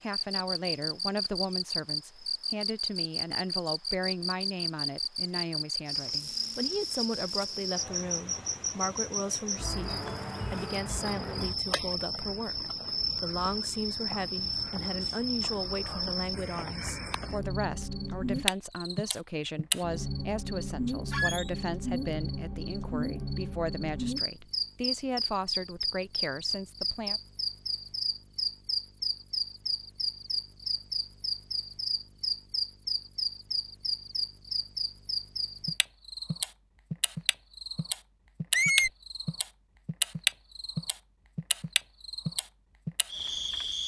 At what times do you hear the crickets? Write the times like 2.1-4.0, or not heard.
0.1-43.8.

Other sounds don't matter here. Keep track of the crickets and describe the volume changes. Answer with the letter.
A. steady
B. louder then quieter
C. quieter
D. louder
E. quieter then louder
A.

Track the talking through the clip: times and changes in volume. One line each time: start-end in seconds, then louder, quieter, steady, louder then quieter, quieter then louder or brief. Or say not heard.
0.0-9.9 steady
10.5-27.2 steady.